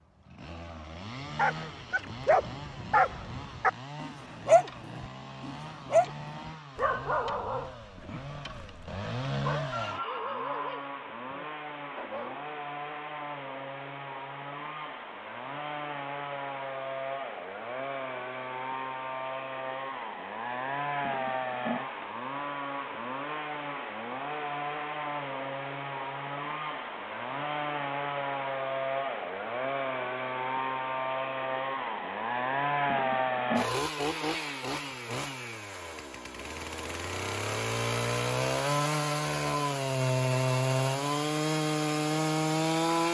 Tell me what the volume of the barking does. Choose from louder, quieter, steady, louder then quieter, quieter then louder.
quieter.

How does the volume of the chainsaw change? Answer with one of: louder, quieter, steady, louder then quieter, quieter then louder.
louder.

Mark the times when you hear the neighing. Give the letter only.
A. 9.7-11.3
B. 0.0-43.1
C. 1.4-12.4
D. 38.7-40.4
A.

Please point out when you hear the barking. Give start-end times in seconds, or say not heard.
1.4-12.4.